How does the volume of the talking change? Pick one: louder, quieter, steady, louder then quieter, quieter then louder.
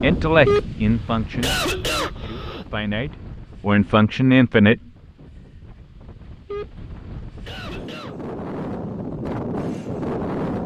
quieter then louder.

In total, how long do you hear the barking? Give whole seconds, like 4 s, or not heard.
not heard.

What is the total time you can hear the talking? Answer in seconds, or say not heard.
5 s.